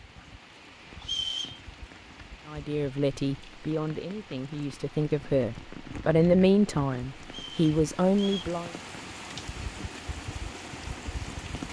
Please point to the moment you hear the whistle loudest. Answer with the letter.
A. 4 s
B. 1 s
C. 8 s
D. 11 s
B.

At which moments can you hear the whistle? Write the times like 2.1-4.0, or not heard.
1.0-1.6, 7.2-8.5.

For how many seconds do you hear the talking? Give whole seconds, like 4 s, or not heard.
6 s.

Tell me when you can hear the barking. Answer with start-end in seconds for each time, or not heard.
not heard.